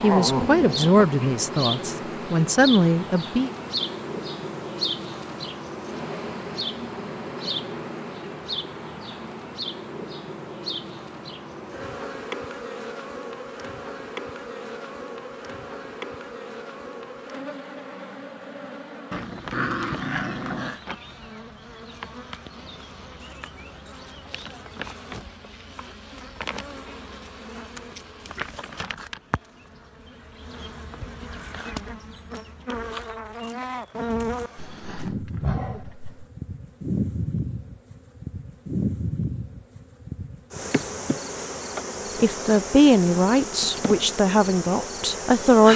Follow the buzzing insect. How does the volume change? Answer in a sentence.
The volume of the buzzing insect goes down, then up.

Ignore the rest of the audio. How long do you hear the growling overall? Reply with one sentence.
You can hear the growling for 5 seconds altogether.